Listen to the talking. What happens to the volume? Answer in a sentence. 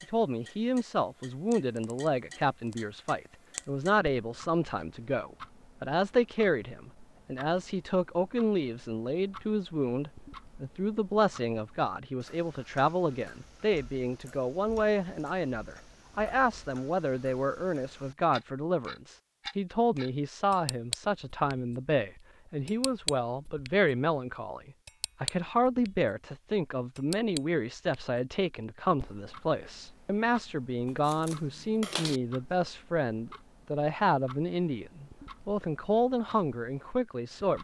The loudness of the talking stays about the same.